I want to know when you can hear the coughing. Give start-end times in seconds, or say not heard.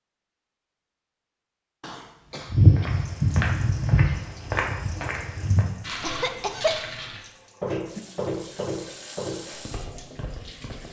1.8-3.0, 6.0-6.9.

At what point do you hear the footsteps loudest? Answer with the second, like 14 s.
3 s.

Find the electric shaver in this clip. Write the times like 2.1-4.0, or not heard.
not heard.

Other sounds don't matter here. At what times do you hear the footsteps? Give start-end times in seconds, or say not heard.
2.5-10.8.